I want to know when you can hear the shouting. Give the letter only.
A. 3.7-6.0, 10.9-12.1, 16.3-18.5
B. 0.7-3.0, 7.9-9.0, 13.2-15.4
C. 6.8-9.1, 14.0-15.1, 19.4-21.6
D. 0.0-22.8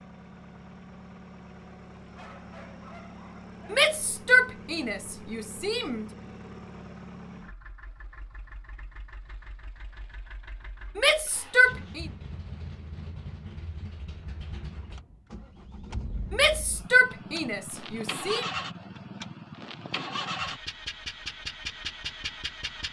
A.